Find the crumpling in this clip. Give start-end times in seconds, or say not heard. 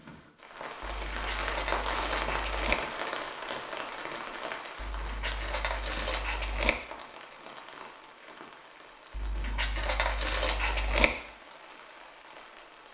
0.8-2.8, 4.8-6.8, 9.2-11.1.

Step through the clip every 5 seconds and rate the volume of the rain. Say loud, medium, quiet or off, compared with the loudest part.
loud, medium, quiet.